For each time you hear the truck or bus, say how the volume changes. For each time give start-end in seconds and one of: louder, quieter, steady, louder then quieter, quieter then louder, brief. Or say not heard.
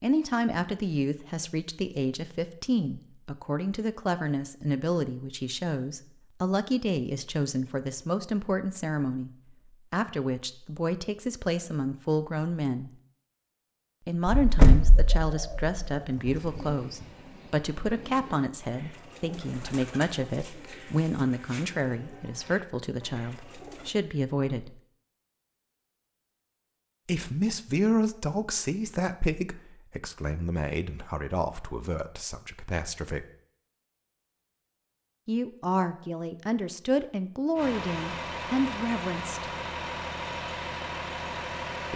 37.5-41.9 steady.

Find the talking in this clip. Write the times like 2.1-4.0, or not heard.
0.0-9.3, 9.9-12.9, 14.1-24.8, 27.1-33.2, 35.2-39.5.